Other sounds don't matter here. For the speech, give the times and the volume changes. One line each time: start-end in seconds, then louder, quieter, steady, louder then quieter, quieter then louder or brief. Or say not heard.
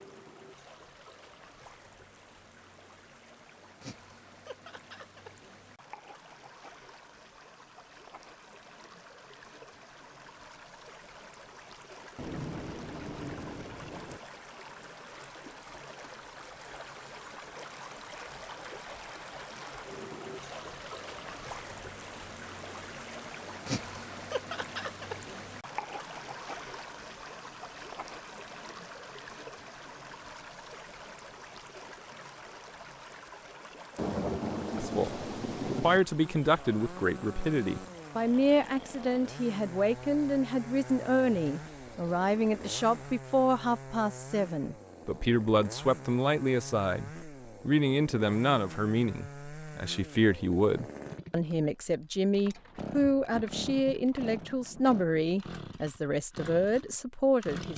34.8-57.7 steady.